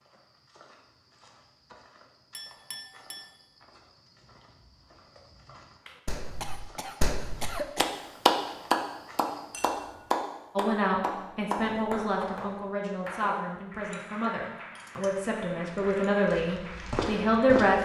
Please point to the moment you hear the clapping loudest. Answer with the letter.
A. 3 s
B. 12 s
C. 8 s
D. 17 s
C.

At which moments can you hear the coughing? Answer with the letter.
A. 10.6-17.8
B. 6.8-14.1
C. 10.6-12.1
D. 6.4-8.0
D.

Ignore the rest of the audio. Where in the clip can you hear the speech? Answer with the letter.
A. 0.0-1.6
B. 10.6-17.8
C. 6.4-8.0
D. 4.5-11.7
B.